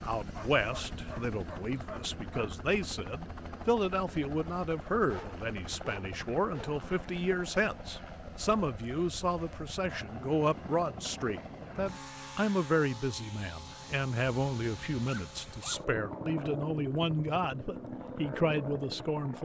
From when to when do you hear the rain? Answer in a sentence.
The rain can't be heard in this clip.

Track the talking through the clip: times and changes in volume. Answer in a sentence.
You can hear the talking from 0.0 to 19.4 s, at a steady volume.